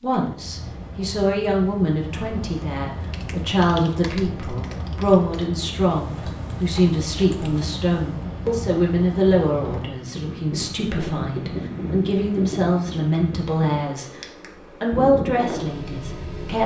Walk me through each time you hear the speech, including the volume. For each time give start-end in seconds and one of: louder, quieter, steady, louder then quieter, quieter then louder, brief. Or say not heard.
0.0-14.1 steady
14.8-16.6 brief.